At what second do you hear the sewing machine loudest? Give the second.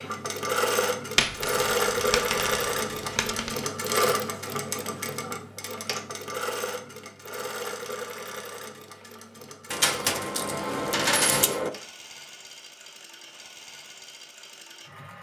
2 s.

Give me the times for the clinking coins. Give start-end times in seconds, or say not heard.
1.1-3.6, 9.7-11.7.